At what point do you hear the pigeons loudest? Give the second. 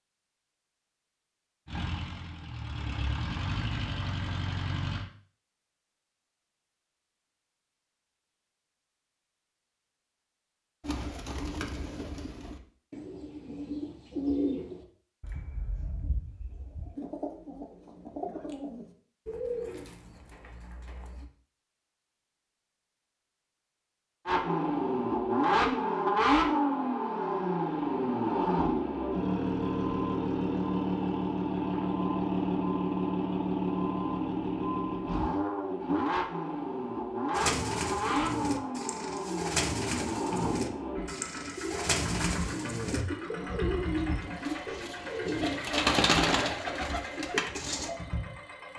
46 s.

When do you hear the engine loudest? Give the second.
26 s.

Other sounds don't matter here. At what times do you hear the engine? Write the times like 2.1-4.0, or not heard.
1.6-5.0, 24.2-48.7.